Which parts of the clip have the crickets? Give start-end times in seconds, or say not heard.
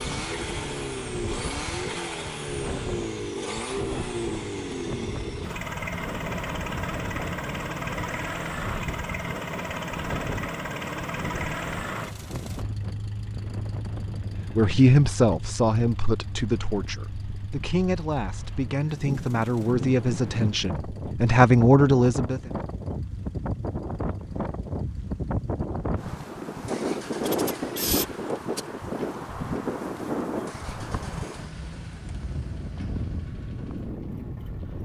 not heard.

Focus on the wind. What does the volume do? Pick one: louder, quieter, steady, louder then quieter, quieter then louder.
louder.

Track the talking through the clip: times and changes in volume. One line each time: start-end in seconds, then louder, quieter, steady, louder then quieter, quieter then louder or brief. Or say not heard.
14.6-22.4 quieter then louder.